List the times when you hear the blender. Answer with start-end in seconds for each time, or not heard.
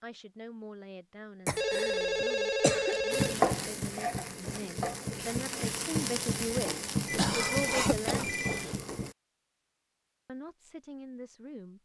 not heard.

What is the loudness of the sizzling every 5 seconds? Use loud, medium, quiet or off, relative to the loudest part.
loud, loud, off.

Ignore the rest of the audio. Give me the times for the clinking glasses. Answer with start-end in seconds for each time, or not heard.
not heard.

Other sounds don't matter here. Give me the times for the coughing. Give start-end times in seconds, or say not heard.
1.4-3.0, 7.2-8.8.